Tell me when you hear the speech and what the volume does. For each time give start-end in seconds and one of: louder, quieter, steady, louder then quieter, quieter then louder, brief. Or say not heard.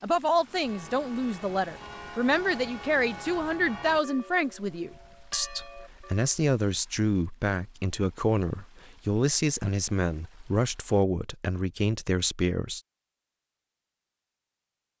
0.0-12.8 steady.